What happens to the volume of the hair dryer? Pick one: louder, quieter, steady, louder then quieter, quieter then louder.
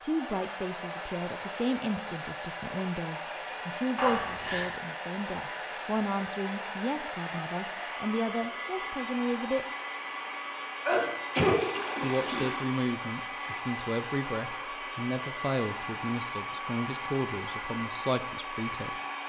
steady.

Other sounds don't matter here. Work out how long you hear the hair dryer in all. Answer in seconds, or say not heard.
19 s.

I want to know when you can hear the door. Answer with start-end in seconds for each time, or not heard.
not heard.